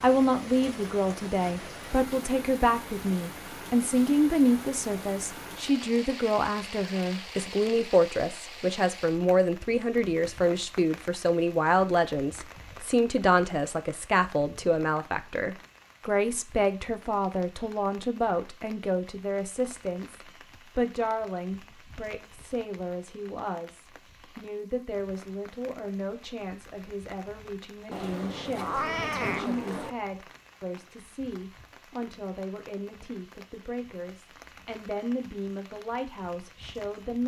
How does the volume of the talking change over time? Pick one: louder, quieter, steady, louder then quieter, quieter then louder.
quieter.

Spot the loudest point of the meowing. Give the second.
29 s.